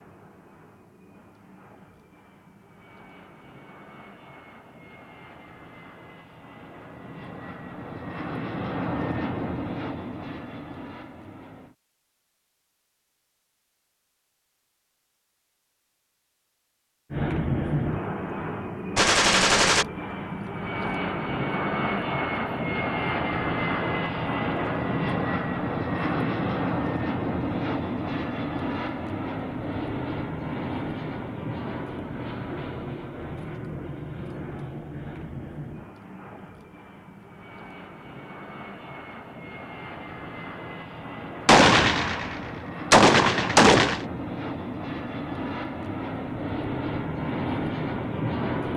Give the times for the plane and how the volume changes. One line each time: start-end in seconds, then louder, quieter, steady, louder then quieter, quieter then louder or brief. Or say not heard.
0.0-11.8 louder
17.1-48.7 quieter then louder.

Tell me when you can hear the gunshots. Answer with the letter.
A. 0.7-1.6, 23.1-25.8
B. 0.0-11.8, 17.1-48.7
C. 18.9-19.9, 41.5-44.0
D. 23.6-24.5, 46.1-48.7
C.